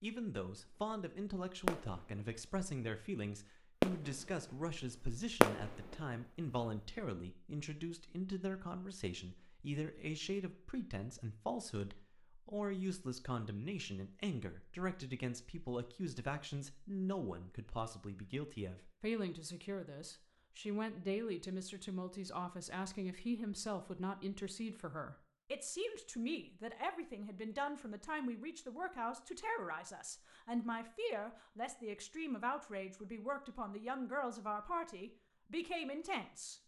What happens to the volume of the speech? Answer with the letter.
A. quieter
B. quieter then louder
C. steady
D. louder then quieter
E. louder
C.